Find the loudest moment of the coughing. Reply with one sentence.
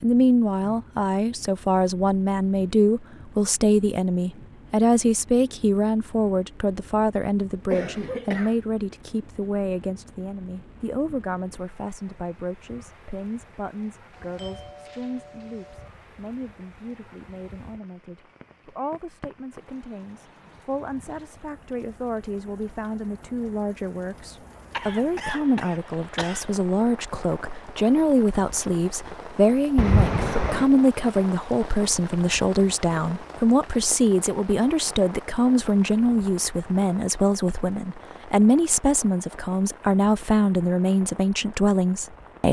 The loudest moment of the coughing is at 30 seconds.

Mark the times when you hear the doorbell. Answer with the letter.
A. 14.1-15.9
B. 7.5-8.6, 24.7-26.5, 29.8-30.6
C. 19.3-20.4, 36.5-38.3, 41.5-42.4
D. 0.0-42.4
A.